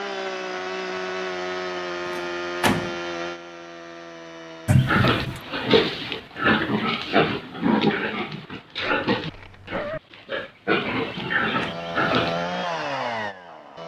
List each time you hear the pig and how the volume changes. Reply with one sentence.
You can hear the pig from 4.7 to 12.4 s, getting quieter then louder.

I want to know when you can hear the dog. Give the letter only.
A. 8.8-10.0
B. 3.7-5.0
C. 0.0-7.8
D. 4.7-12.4
A.